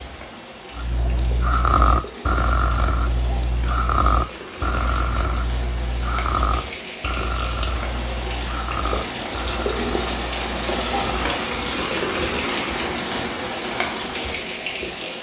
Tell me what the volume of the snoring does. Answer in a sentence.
The loudness of the snoring goes down.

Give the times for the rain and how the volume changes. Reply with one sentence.
You can hear the rain from 0.0 to 15.1 s, getting louder.